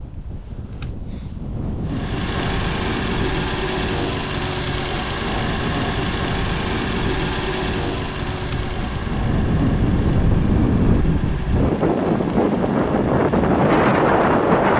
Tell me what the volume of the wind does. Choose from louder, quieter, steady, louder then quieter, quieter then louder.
louder.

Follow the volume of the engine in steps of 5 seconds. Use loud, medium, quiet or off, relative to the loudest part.
loud, loud, medium.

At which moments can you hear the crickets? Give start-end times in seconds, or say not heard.
not heard.